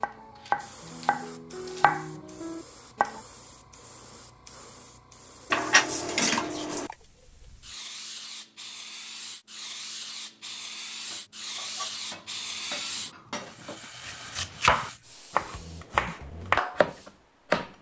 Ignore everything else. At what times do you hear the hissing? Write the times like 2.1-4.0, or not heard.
0.0-17.7.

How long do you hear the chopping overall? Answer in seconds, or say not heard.
7 s.